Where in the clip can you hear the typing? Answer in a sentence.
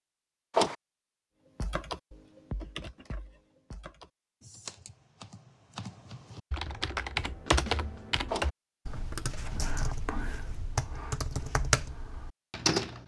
You can hear the typing from 1.6 to 13.0 s.